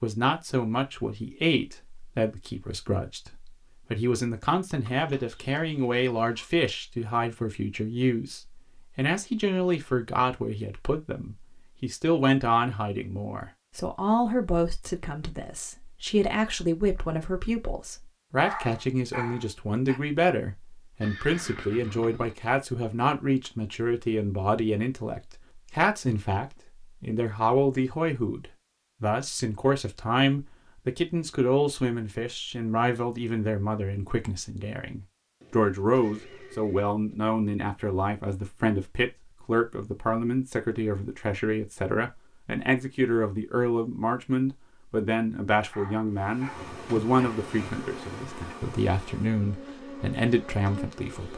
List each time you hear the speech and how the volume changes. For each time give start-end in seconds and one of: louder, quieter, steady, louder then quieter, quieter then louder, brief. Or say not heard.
0.0-51.3 steady.